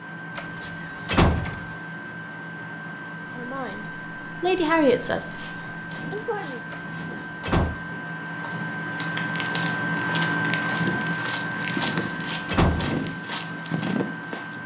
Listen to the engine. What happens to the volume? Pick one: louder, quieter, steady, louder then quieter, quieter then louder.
louder then quieter.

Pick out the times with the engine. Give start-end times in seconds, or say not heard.
0.0-14.6.